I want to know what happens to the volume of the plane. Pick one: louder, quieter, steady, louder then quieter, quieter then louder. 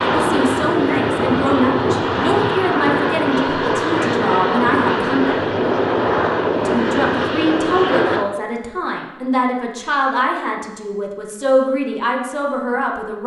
steady.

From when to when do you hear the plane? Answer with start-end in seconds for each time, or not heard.
0.0-8.2.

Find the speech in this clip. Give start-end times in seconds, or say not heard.
0.1-5.5, 6.6-13.2.